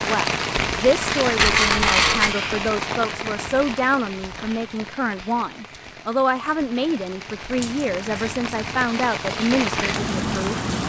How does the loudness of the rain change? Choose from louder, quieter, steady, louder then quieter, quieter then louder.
quieter then louder.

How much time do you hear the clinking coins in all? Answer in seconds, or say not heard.
2 s.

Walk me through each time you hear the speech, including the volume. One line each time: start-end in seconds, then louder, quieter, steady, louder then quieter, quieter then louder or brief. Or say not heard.
0.0-10.6 steady.